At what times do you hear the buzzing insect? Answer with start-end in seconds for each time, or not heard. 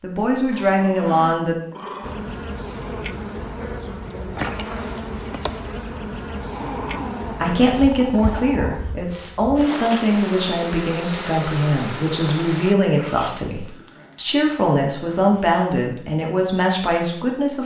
2.0-12.8.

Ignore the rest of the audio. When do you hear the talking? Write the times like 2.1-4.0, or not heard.
0.0-1.6, 7.3-17.6.